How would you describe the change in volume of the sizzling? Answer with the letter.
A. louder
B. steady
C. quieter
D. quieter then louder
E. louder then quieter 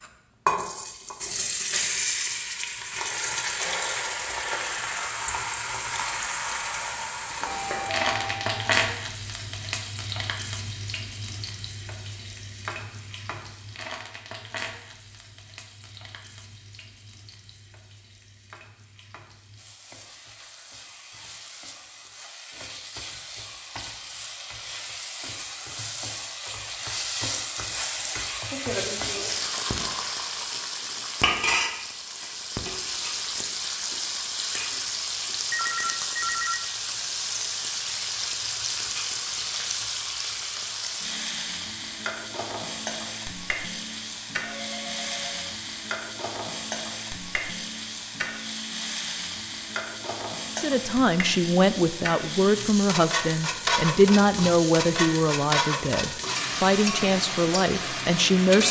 D.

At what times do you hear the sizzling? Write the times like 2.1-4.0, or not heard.
0.0-58.6.